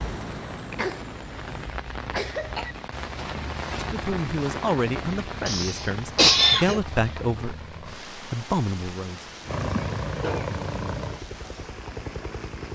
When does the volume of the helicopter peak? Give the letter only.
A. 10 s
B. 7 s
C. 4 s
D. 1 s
A.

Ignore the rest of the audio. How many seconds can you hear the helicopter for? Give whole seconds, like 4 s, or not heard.
5 s.